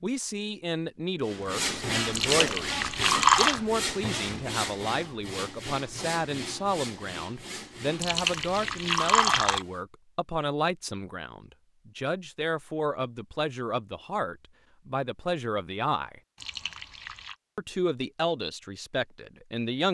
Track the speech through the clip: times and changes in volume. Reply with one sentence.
The speech can be heard from 0.0 to 16.2 s, at a steady volume; and briefly from 17.6 to 19.8 s.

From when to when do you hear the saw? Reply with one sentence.
The saw can be heard from 1.2 to 9.8 s.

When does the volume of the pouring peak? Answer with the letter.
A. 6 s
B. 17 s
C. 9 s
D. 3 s
D.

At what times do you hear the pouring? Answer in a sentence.
The pouring can be heard from 2.1 to 3.6 s, from 8.0 to 9.7 s and from 16.4 to 17.4 s.